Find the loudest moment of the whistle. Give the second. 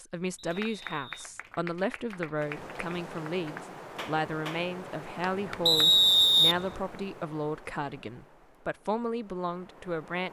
6 s.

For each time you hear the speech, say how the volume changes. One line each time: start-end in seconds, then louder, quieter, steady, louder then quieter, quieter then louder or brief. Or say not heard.
0.0-10.2 steady.